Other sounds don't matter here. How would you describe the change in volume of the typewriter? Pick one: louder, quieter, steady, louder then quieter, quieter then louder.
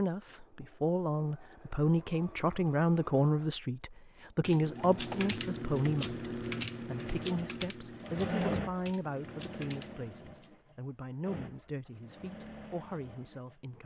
quieter.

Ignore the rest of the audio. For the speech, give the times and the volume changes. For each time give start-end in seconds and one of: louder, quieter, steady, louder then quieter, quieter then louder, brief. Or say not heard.
0.0-13.8 quieter.